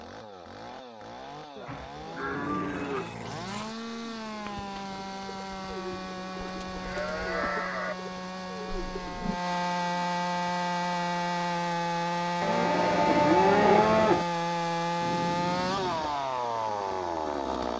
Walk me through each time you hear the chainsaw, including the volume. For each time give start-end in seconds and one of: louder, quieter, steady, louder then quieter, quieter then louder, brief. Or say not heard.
0.0-17.7 louder.